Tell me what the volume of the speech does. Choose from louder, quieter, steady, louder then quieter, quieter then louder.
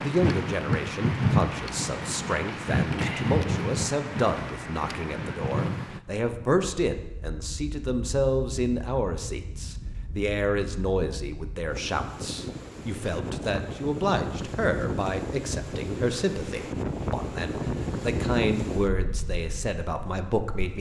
steady.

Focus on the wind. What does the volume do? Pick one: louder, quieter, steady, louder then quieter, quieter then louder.
quieter then louder.